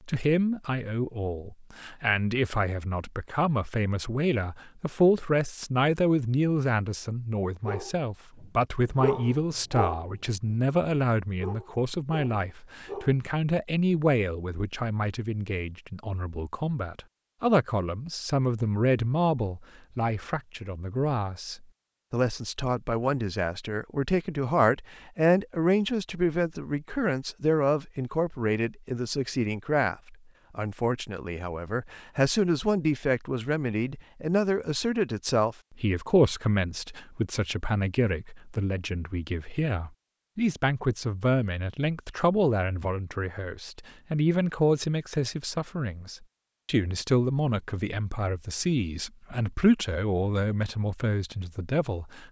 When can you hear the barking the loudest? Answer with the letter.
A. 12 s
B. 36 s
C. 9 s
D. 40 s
C.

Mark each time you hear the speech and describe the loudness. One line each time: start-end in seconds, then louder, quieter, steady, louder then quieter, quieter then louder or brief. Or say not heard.
0.1-52.2 steady.